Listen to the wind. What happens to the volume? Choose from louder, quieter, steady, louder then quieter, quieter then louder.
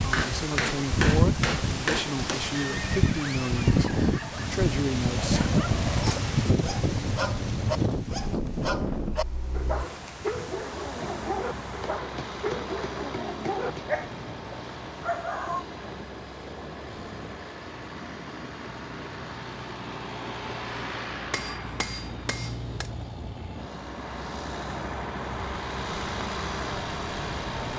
quieter.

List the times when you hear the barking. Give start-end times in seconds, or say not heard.
5.2-15.7.